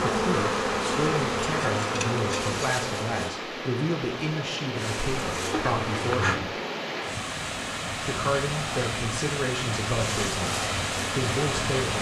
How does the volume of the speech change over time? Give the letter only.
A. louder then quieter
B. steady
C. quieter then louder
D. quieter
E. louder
B.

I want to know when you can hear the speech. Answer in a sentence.
The speech can be heard from 0.0 to 6.5 s and from 8.0 to 11.9 s.